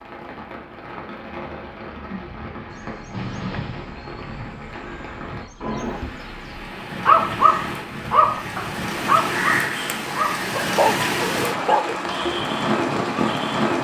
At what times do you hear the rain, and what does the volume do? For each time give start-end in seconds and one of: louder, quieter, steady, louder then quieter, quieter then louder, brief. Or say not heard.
0.0-13.7 louder.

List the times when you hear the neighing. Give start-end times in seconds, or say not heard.
3.1-4.0.